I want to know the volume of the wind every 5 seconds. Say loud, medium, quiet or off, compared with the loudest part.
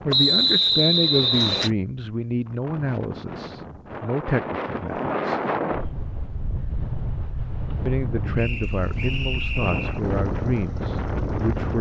medium, loud, loud.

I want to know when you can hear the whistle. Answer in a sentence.
The whistle can be heard from 0.1 to 1.7 s and from 8.3 to 10.0 s.